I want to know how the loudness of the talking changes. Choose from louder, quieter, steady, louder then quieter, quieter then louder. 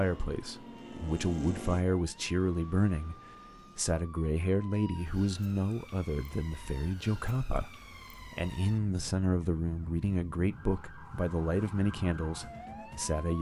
steady.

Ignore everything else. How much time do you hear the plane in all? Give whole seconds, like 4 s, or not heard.
2 s.